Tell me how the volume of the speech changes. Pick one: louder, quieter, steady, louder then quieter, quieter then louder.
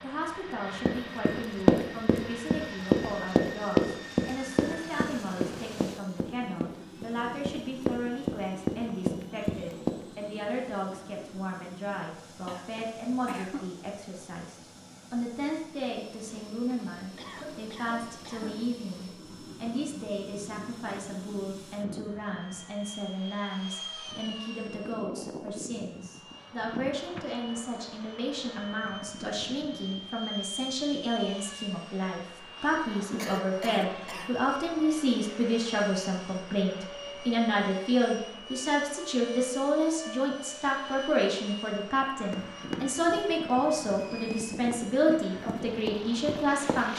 louder.